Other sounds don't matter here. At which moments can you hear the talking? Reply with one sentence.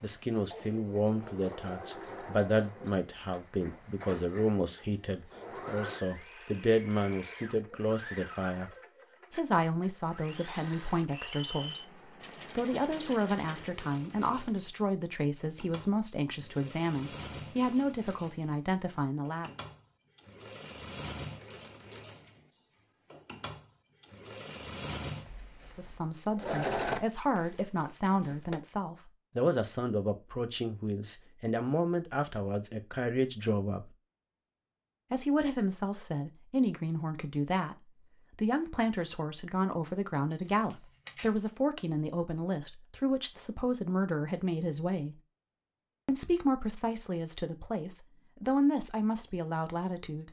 You can hear the talking from 0.0 to 8.7 s, from 9.3 to 19.6 s, from 25.8 to 34.0 s, from 35.1 to 45.1 s and from 46.0 to 50.2 s.